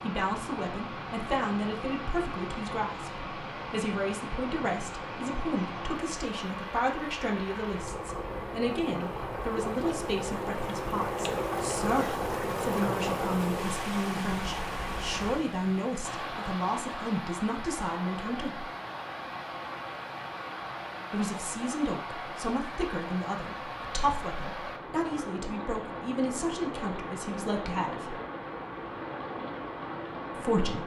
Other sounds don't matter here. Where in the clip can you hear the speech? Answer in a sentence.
You can hear the speech from 0.0 to 18.6 s, from 21.1 to 28.1 s and from 30.4 to 30.8 s.